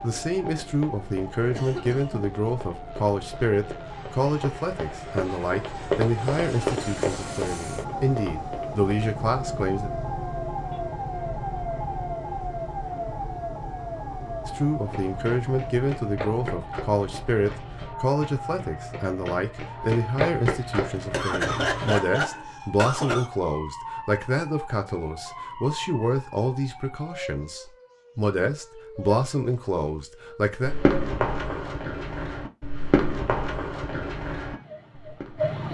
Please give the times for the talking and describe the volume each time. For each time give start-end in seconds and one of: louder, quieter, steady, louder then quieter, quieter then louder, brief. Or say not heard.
0.0-9.9 steady
14.4-30.8 steady.